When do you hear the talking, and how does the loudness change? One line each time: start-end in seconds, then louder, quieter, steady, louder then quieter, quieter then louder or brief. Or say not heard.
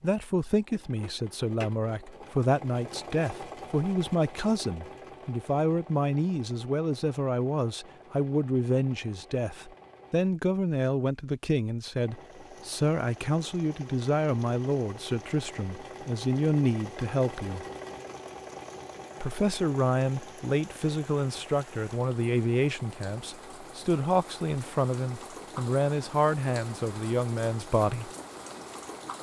0.0-17.6 steady
19.2-28.1 steady.